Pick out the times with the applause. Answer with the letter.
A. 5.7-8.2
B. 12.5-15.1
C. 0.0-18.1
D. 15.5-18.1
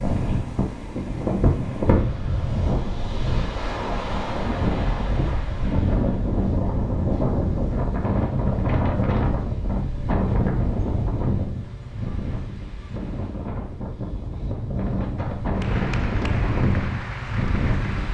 D.